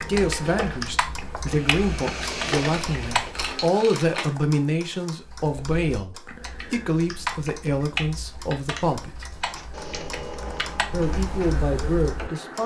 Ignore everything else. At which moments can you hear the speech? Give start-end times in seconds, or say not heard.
0.0-9.3, 10.9-12.6.